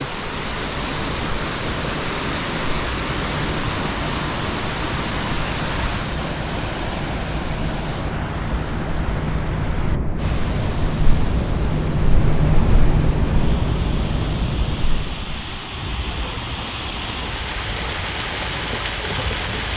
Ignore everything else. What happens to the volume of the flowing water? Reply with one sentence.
The loudness of the flowing water goes down, then up.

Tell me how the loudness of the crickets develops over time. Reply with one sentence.
The volume of the crickets goes up, then down.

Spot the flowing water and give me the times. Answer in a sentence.
You can hear the flowing water from 0.0 to 19.7 s.